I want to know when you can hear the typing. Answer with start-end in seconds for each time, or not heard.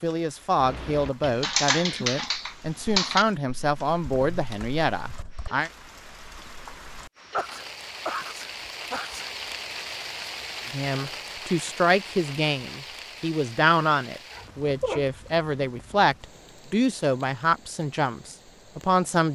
0.6-5.7.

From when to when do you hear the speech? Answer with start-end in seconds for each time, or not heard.
0.0-5.7, 10.7-19.3.